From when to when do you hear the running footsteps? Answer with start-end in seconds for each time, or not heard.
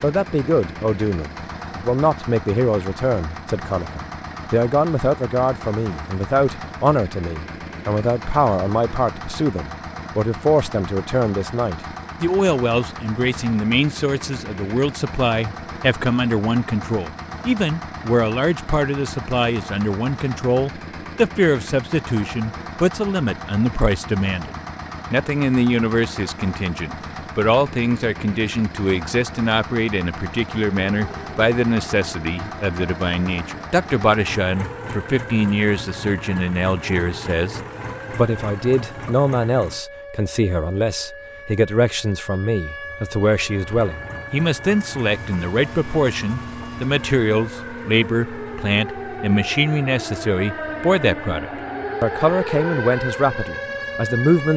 not heard.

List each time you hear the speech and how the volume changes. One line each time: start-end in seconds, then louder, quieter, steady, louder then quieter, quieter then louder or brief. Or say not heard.
0.0-54.5 steady.